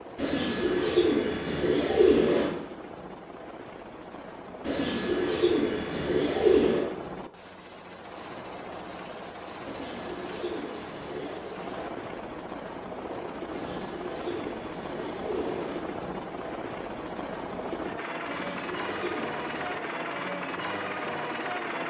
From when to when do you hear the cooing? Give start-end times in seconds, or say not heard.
0.1-2.5, 4.6-6.8, 9.7-11.5, 13.4-15.8, 18.2-19.8.